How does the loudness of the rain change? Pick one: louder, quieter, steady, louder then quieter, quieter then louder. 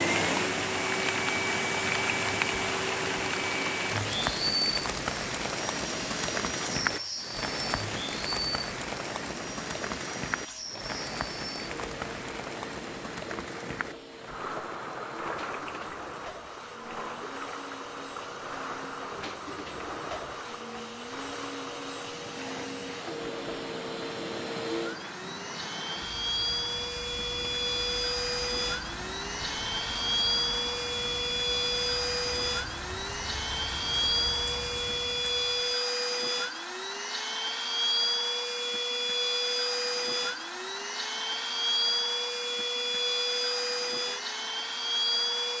quieter.